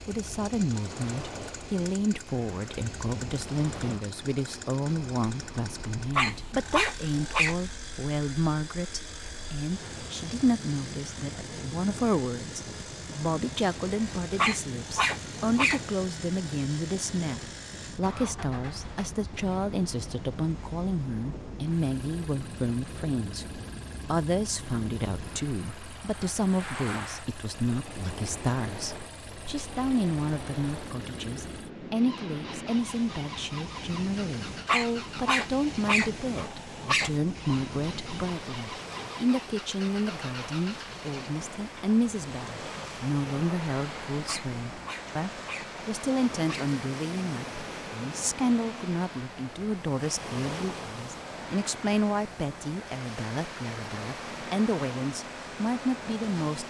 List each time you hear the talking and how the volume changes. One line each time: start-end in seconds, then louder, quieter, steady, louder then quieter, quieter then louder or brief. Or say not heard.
0.1-56.6 steady.